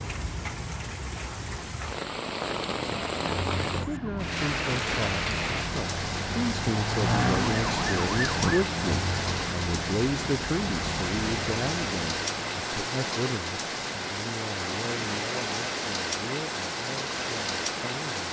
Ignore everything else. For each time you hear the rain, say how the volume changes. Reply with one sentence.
The rain can be heard from 0.0 to 18.2 s, at a steady volume.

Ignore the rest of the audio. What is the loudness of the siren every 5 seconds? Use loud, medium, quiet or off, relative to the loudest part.
medium, loud, medium, off.